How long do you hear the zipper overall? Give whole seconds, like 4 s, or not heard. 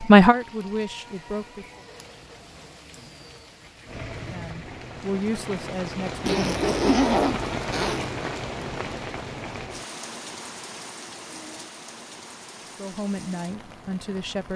2 s.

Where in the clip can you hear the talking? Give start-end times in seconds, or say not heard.
0.1-1.8, 4.2-6.6, 12.8-14.5.